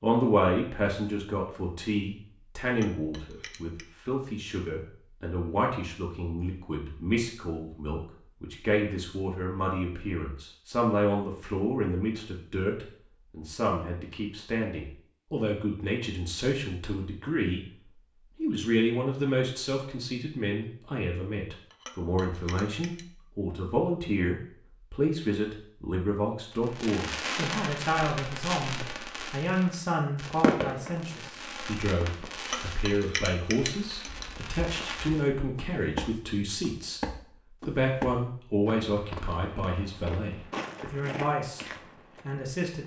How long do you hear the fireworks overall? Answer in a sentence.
The fireworks can be heard for 9 seconds in total.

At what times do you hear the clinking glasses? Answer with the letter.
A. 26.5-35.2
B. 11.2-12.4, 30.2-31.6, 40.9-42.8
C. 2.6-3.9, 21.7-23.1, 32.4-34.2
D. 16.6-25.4
C.